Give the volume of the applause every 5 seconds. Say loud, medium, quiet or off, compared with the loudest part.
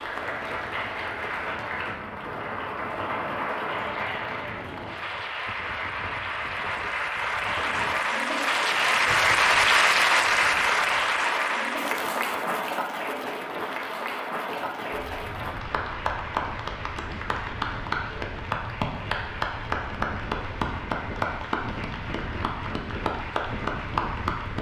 medium, loud, loud, medium, medium.